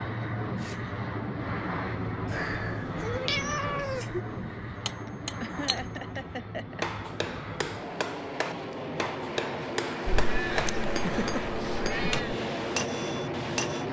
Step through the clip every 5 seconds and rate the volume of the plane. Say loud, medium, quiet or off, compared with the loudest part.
loud, medium, loud.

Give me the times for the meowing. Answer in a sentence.
You can hear the meowing from 2.2 to 4.2 s and from 10.1 to 12.3 s.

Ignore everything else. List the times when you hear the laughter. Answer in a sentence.
The laughter can be heard from 0.5 to 0.9 s, from 4.8 to 6.8 s and from 10.8 to 11.9 s.